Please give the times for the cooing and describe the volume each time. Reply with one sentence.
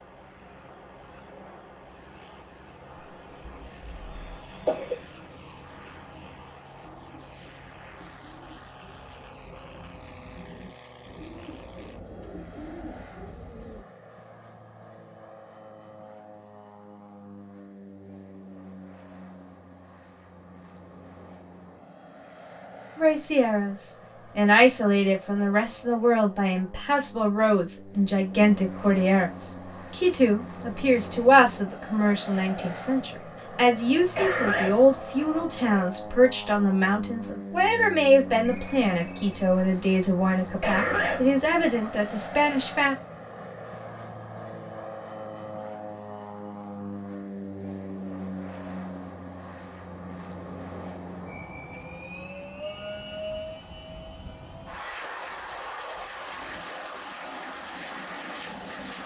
You can hear the cooing from 5.0 to 13.8 s, getting louder.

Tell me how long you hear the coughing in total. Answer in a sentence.
You can hear the coughing for 4 seconds altogether.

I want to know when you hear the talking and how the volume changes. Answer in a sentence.
You can hear the talking from 22.9 to 43.0 s, at a steady volume.